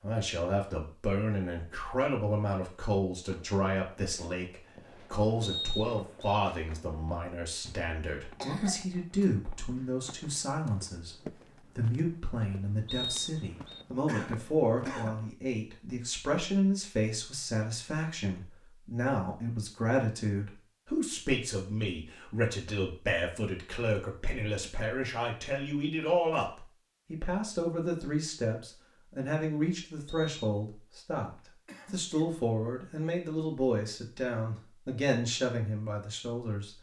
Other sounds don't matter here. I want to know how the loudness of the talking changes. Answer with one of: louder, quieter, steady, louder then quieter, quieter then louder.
steady.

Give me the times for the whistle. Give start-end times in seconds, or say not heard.
5.4-6.4, 12.8-13.8, 30.1-30.6.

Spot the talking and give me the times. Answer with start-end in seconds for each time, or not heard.
0.0-36.7.